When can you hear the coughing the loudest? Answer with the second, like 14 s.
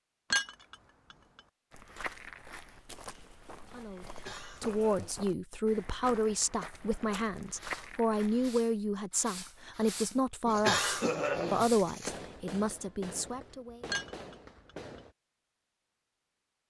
11 s.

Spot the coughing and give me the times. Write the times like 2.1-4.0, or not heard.
4.0-5.2, 10.4-12.1.